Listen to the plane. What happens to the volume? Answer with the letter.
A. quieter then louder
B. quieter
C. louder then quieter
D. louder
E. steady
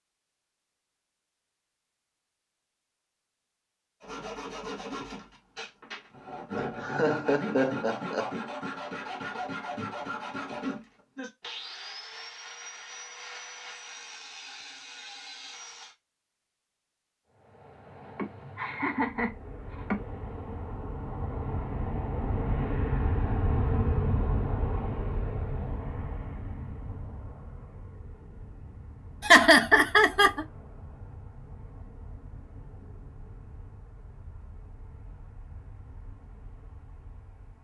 C.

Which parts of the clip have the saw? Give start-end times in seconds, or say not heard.
4.0-15.9.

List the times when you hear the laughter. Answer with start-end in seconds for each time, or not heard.
6.5-8.3, 18.1-20.0, 29.2-30.4.